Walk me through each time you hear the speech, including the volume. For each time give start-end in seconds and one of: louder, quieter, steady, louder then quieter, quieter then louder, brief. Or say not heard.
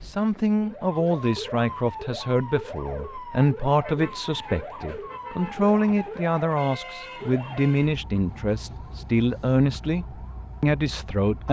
0.0-11.4 steady.